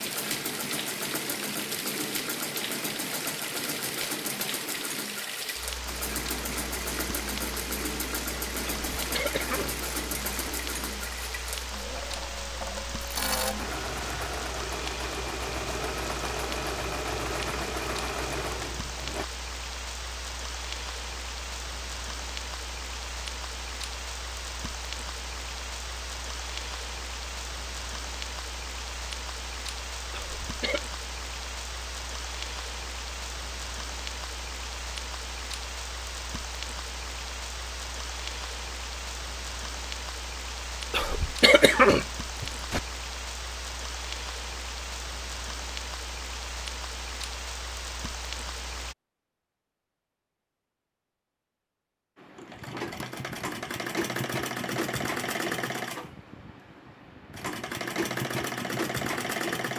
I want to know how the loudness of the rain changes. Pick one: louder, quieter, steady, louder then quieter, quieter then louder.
steady.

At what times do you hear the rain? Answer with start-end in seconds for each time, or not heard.
0.0-49.0.